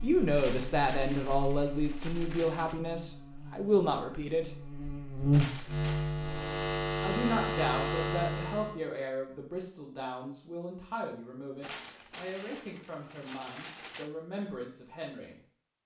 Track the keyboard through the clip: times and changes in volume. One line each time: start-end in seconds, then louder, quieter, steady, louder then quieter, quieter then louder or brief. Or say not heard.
not heard.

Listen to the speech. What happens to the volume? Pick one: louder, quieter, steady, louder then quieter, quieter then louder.
quieter.